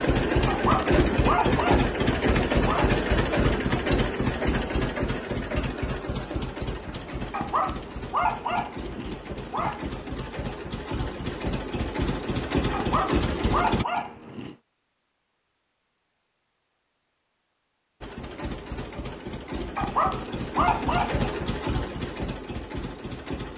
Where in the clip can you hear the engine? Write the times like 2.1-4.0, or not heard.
0.0-13.8, 18.0-23.5.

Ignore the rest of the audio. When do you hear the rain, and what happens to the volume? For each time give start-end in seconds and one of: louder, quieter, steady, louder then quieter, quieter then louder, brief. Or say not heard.
not heard.